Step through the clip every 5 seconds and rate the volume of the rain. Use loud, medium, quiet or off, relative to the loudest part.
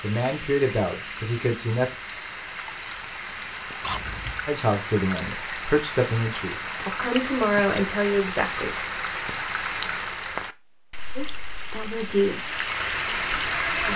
medium, loud, loud.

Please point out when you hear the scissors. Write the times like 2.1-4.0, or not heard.
3.8-4.5, 7.3-7.8.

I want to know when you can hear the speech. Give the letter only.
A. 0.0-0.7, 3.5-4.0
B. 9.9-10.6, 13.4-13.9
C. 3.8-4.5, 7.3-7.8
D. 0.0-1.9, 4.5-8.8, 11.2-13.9
D.